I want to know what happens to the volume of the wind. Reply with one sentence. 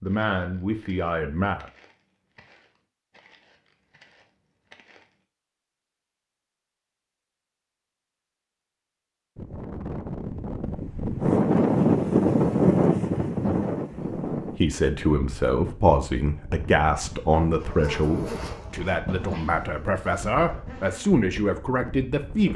The volume of the wind goes down.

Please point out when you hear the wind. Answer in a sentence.
The wind can be heard from 9.3 to 22.5 s.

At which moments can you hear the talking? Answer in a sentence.
The talking can be heard from 0.0 to 1.6 s and from 14.4 to 22.5 s.